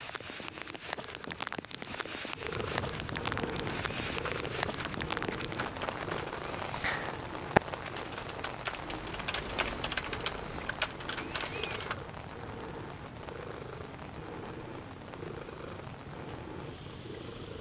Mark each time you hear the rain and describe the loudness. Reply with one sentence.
The rain can be heard from 0.0 to 17.5 s, getting quieter.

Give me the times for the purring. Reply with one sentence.
You can hear the purring from 0.0 to 17.5 s.